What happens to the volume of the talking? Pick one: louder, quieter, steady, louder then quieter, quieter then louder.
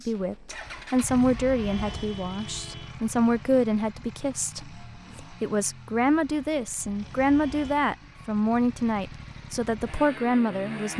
steady.